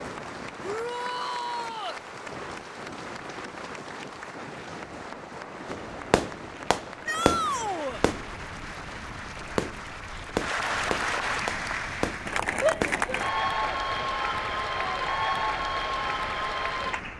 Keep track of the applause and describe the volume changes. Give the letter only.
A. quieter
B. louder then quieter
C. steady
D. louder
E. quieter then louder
D.